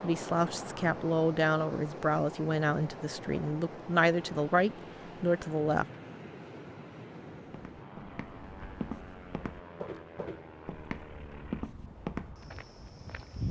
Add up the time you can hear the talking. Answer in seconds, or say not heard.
6 s.